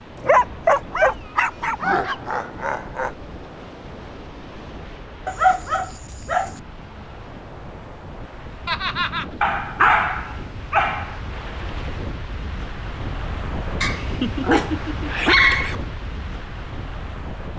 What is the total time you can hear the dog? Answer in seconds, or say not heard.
7 s.